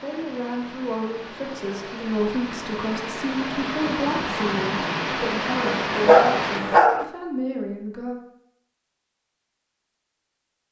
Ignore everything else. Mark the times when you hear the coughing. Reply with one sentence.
You can't hear the coughing here.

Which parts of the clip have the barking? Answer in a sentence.
You can hear the barking from 5.7 to 7.0 s.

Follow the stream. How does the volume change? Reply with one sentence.
The loudness of the stream goes up.